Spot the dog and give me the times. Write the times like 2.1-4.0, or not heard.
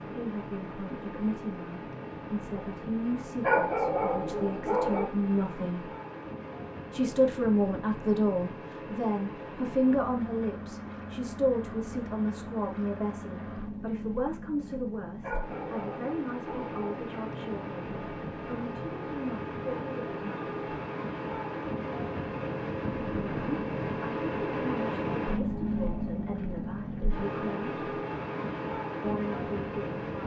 3.4-5.0, 15.2-17.0.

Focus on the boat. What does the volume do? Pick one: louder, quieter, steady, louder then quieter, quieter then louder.
louder.